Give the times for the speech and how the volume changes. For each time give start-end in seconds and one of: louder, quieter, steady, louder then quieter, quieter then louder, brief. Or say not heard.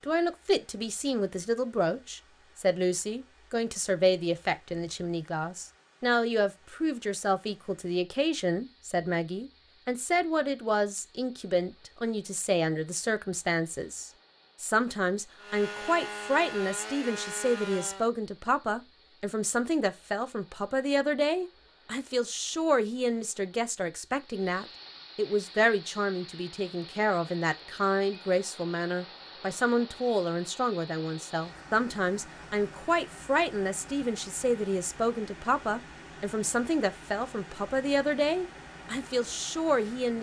0.0-40.1 steady.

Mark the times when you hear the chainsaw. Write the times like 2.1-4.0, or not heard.
15.3-18.1.